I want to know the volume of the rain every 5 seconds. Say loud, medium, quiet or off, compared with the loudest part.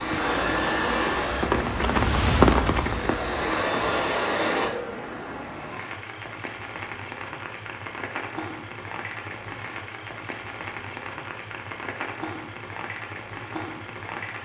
loud, medium, medium.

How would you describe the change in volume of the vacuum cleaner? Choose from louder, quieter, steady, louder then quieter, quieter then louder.
quieter then louder.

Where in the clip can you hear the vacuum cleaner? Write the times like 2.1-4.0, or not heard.
0.0-4.7.